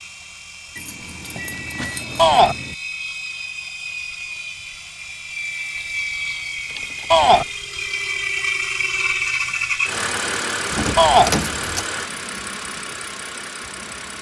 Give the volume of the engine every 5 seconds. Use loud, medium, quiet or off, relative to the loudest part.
medium, loud, loud.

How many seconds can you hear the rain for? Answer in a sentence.
You can't hear the rain here.